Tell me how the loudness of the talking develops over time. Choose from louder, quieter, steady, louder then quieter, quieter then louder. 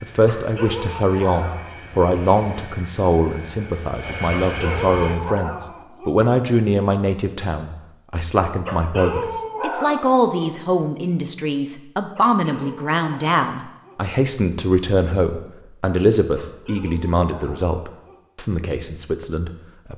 steady.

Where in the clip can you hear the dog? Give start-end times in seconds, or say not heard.
0.2-2.1, 4.5-6.2, 8.7-10.3, 12.2-14.0, 16.4-18.2.